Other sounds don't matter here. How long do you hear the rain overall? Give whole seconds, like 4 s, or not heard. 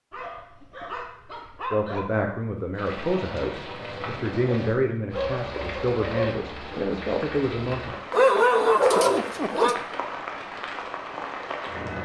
9 s.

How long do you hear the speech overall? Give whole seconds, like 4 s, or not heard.
6 s.